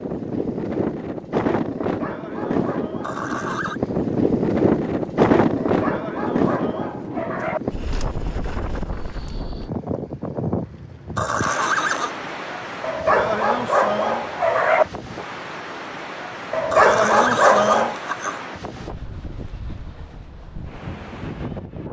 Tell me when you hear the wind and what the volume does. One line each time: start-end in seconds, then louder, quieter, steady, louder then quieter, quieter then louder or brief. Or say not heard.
0.0-21.8 quieter.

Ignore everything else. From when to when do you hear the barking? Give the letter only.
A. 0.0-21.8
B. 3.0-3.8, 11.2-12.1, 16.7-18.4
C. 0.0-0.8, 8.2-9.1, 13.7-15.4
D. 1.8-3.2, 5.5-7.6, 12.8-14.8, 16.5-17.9
D.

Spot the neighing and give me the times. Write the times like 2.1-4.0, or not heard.
3.0-3.8, 11.2-12.1, 16.7-18.4.